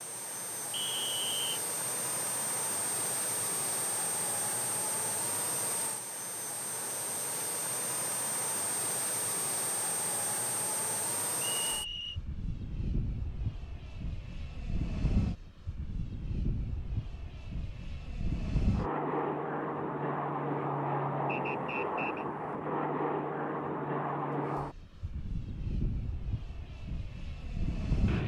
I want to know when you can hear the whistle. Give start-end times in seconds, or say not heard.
0.7-1.6, 11.6-12.2, 21.2-22.2.